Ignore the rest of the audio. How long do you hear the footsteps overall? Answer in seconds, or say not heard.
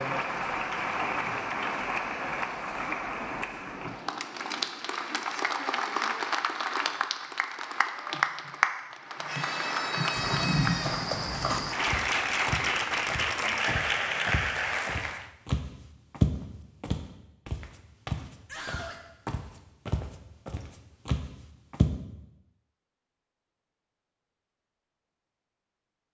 12 s.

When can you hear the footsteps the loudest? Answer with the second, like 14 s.
16 s.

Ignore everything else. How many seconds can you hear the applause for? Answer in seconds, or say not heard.
15 s.